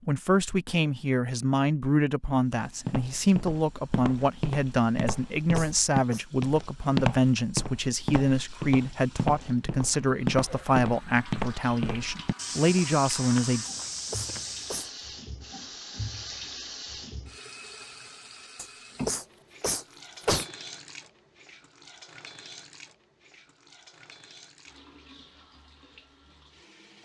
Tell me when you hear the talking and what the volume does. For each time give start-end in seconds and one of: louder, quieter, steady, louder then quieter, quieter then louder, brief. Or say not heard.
0.1-13.7 steady.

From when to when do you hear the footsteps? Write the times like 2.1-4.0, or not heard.
2.9-14.8.